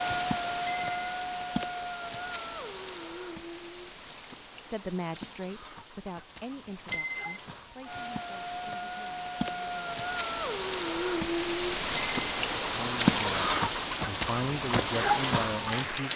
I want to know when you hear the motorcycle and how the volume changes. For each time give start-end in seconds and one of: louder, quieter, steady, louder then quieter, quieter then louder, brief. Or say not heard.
not heard.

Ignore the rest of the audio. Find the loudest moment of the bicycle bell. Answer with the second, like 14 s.
7 s.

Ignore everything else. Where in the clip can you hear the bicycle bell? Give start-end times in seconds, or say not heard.
0.7-1.1, 6.9-7.3, 11.9-12.3.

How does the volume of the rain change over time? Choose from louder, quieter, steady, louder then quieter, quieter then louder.
quieter then louder.